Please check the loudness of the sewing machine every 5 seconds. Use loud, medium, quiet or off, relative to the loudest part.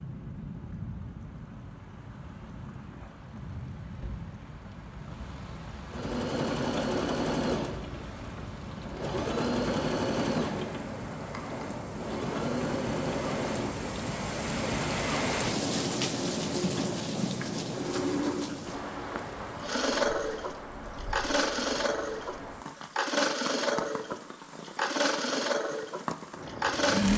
off, loud, medium, medium, loud, loud.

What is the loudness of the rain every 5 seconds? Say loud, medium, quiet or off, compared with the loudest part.
medium, medium, loud, loud, medium, medium.